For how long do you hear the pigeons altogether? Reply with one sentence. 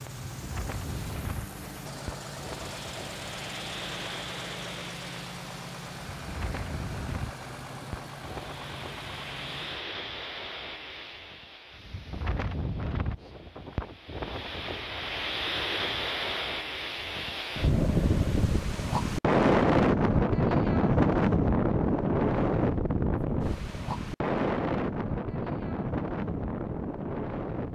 You can't hear the pigeons here.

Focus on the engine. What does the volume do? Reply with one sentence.
The volume of the engine stays about the same.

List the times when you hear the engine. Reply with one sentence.
You can hear the engine from 0.0 to 9.8 s.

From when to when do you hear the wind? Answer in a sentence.
The wind can be heard from 0.2 to 27.6 s.